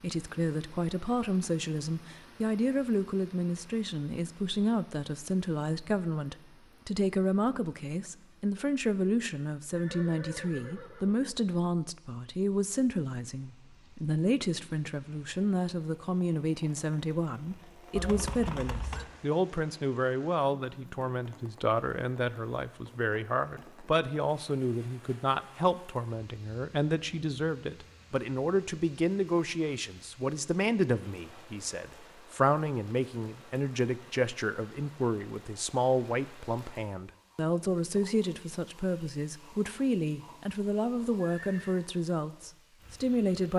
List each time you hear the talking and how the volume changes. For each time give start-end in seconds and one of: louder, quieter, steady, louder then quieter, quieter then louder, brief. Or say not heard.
0.0-43.5 steady.